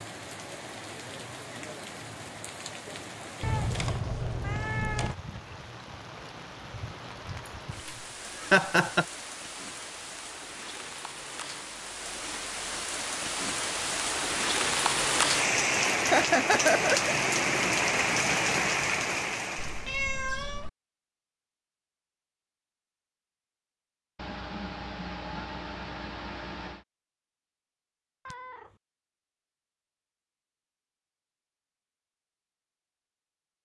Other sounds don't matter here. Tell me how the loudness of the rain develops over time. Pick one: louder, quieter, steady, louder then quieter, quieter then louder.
louder.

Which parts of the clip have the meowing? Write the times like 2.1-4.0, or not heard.
3.4-5.2, 19.6-20.7, 28.2-28.7.